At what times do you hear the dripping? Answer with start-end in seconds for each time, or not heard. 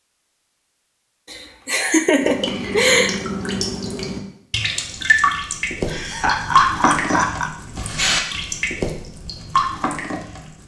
2.2-10.6.